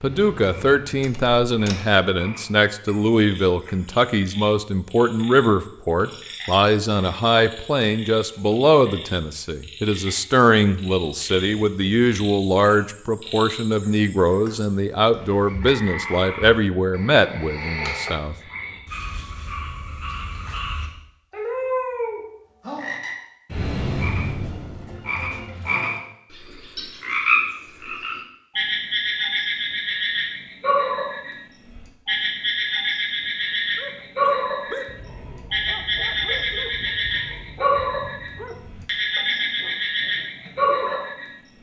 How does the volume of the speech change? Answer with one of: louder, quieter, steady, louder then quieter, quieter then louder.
steady.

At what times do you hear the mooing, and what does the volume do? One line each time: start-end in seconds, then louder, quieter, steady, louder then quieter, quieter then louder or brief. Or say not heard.
not heard.